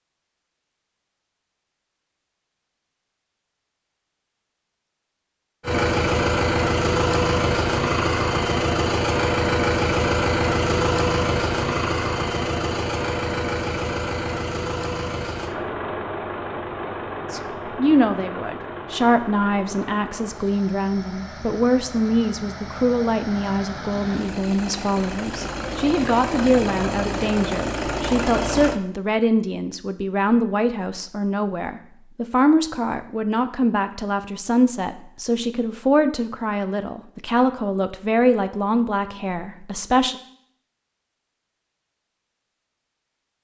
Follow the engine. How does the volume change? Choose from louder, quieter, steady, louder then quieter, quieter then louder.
quieter then louder.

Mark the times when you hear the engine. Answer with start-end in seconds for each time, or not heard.
5.6-28.8.